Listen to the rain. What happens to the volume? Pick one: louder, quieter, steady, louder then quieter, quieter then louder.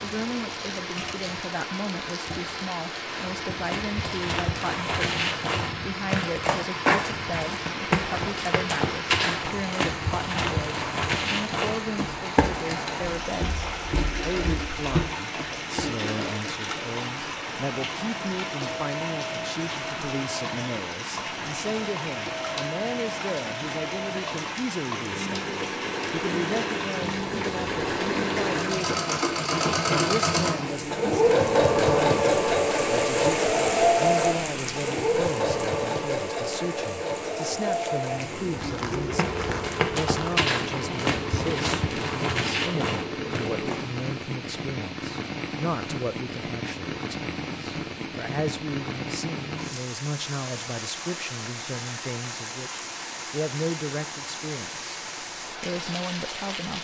steady.